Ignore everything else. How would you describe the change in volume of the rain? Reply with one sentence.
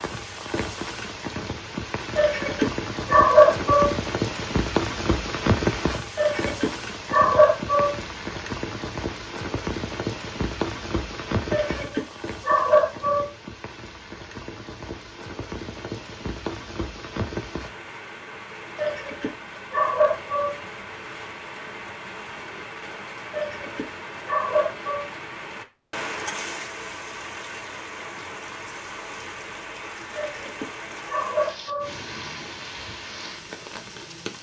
The volume of the rain goes down.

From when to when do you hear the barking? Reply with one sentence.
The barking can be heard from 2.1 to 4.0 s, from 6.2 to 8.0 s, from 11.5 to 13.3 s, from 18.8 to 20.6 s, from 23.3 to 25.1 s and from 30.1 to 31.9 s.